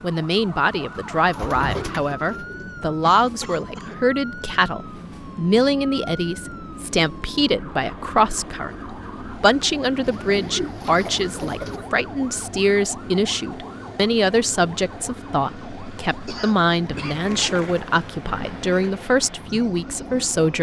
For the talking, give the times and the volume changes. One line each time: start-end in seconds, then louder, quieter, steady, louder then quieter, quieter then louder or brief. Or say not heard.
0.0-20.5 steady.